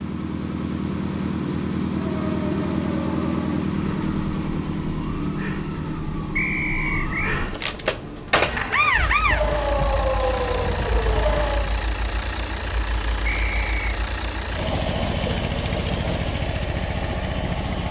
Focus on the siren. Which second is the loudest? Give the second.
9 s.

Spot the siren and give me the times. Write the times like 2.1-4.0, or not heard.
1.9-11.7.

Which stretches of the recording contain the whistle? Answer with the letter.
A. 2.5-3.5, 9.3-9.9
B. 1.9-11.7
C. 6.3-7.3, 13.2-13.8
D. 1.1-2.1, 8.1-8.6
C.